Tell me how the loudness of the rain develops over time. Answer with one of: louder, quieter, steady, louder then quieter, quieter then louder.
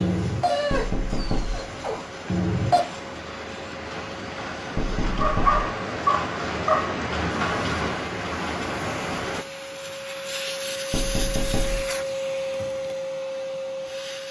louder.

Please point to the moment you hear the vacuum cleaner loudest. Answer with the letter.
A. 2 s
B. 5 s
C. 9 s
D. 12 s
D.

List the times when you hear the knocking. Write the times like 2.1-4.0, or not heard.
0.7-1.7, 4.8-5.7, 10.9-11.9.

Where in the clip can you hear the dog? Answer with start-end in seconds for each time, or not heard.
0.0-2.9, 5.2-7.0.